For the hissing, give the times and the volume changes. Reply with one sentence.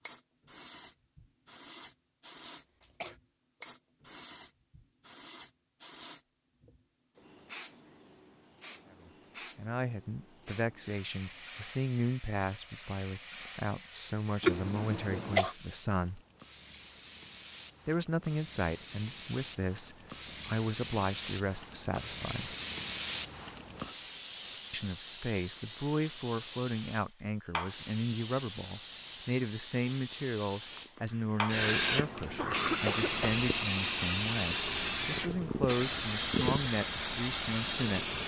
The hissing can be heard from 0.0 to 38.2 s, getting louder.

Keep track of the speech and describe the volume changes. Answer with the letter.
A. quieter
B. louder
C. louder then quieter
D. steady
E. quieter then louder
D.